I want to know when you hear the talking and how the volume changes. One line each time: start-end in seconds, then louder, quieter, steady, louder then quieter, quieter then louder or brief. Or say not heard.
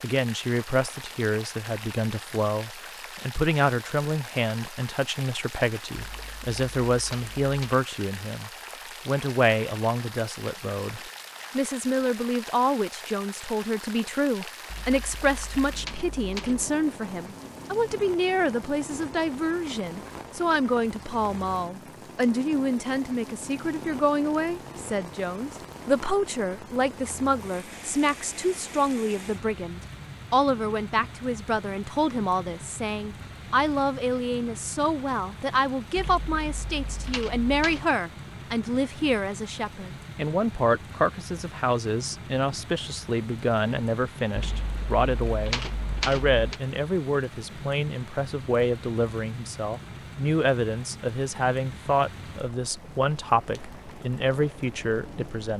0.0-55.5 steady.